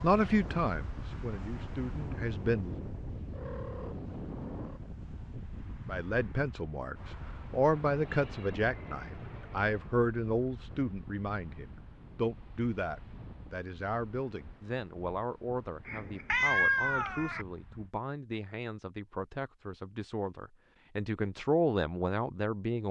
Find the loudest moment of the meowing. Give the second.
17 s.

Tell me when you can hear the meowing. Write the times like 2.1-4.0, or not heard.
3.3-4.8, 7.7-9.9, 15.8-17.4.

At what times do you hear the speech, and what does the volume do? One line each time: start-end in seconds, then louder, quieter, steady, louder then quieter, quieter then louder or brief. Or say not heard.
0.0-2.8 brief
5.8-22.8 quieter then louder.